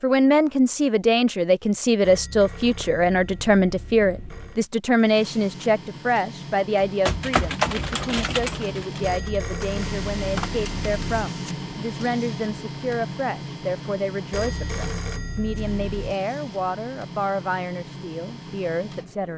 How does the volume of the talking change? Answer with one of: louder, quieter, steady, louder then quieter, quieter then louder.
quieter.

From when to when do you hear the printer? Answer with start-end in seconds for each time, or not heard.
5.0-19.3.